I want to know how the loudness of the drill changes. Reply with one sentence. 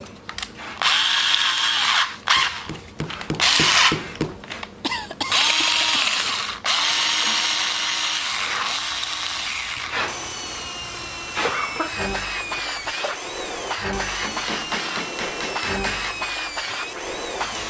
The volume of the drill goes down.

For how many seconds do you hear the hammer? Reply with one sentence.
You can hear the hammer for 4 seconds altogether.